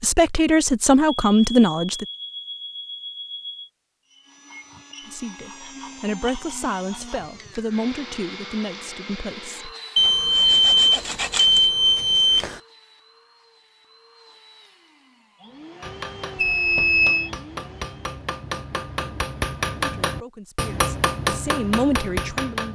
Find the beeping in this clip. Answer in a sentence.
You can hear the beeping from 1.3 to 3.7 s, from 9.9 to 12.6 s and from 16.4 to 17.3 s.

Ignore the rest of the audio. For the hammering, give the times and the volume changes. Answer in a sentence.
The hammering can be heard from 15.8 to 22.7 s, getting louder.